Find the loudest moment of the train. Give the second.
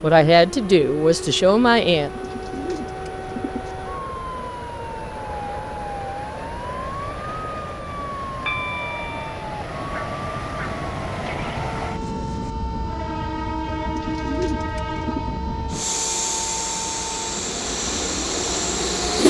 19 s.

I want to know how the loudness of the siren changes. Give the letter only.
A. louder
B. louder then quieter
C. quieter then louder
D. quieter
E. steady
E.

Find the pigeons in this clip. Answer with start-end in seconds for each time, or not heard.
2.1-3.8, 13.8-15.3.